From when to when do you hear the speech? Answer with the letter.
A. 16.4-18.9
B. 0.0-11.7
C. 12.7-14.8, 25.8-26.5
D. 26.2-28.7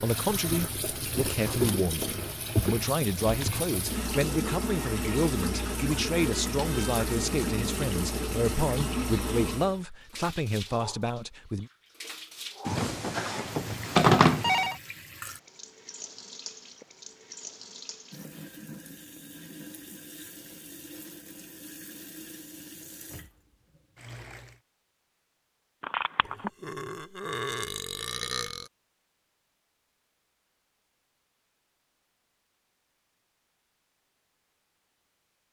B.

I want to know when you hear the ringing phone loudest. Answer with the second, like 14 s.
14 s.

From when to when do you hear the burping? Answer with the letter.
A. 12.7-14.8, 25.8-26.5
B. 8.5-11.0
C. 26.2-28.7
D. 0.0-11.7
C.